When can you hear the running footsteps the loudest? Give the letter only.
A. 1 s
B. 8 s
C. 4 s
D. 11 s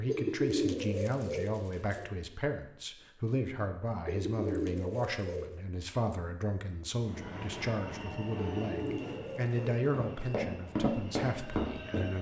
D.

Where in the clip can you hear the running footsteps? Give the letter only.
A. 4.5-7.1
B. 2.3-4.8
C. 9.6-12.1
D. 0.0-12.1
C.